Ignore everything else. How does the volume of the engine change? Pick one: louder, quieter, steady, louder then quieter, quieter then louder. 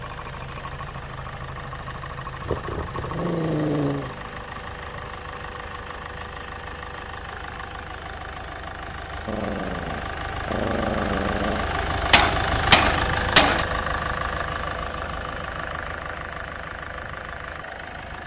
louder then quieter.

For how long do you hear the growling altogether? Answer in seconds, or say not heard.
4 s.